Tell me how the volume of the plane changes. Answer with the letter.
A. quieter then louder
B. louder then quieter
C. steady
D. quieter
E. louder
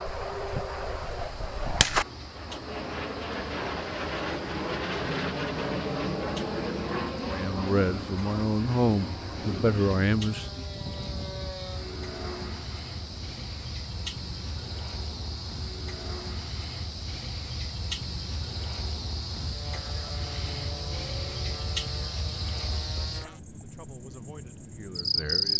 D.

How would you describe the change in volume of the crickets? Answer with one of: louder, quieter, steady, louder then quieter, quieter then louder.
louder.